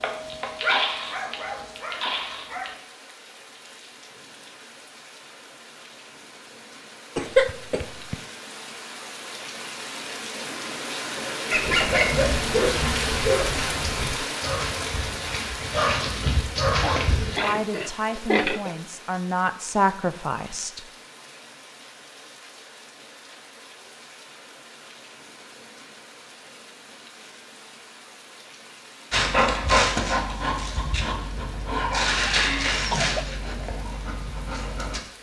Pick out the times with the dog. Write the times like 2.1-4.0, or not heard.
0.0-2.8, 11.5-17.4, 29.1-35.0.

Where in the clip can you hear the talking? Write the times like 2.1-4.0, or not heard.
17.4-20.9.